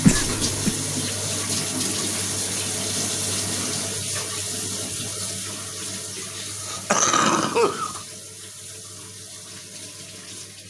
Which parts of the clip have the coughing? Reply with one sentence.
The coughing can be heard from 0.0 to 0.8 s and from 6.2 to 8.0 s.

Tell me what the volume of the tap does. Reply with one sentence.
The volume of the tap goes down.